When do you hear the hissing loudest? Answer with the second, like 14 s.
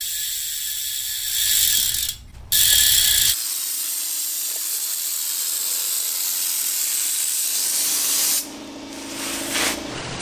8 s.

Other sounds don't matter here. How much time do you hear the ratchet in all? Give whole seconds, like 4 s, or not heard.
3 s.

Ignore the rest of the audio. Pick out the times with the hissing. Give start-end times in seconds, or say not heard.
2.4-10.1.